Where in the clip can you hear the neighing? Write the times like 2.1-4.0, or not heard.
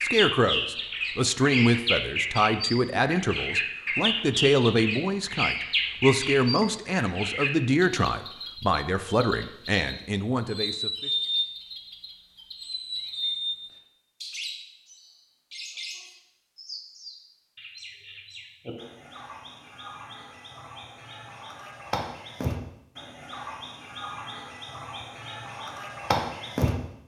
not heard.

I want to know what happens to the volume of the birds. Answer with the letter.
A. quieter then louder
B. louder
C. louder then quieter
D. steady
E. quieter
A.